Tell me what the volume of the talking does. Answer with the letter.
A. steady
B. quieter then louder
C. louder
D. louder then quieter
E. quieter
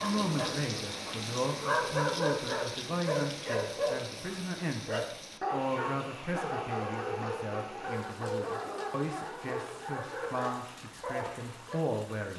A.